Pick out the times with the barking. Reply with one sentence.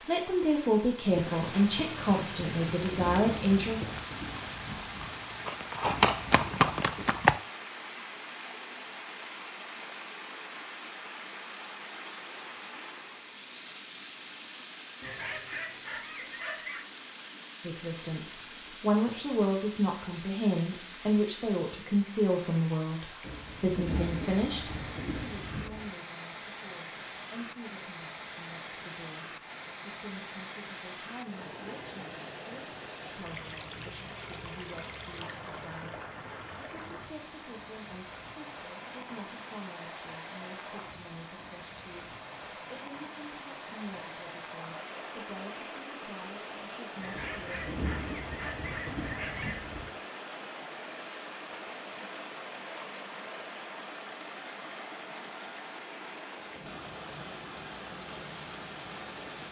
You can hear the barking from 15.0 to 16.9 s and from 47.0 to 49.6 s.